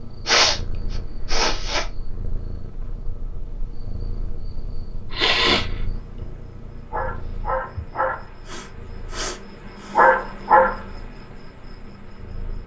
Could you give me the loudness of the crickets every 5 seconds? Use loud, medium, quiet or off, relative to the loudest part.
quiet, medium, loud.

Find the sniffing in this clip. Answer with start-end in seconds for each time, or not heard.
0.2-1.9, 5.1-6.2, 8.4-10.2.